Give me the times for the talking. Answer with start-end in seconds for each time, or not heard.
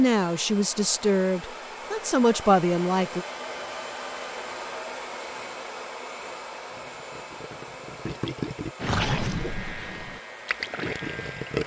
0.0-3.2.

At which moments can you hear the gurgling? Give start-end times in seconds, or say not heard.
6.7-11.6.